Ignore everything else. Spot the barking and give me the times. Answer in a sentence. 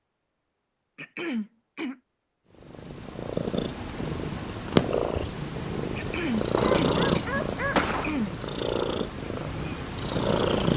You can hear the barking from 6.5 to 8.2 s.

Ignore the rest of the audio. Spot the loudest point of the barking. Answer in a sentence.
The loudest moment of the barking is at 8 seconds.